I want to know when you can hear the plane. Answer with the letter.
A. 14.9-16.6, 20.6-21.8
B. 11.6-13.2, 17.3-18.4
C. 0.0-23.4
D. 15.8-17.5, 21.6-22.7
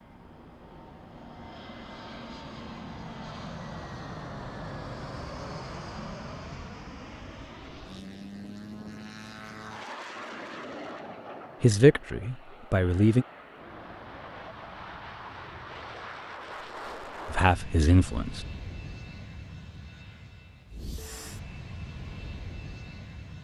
C.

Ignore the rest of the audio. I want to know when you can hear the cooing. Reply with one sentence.
You can't hear the cooing here.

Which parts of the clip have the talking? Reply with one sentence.
The talking can be heard from 11.6 to 13.2 s and from 17.3 to 18.4 s.